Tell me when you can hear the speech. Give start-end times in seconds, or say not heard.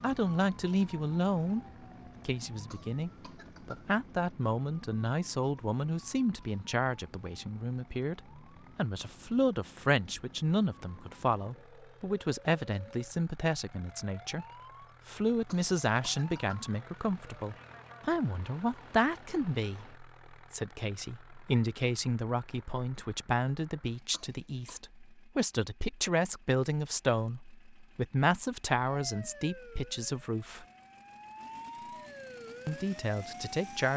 0.0-1.6, 2.2-14.4, 15.1-30.6, 32.6-33.9.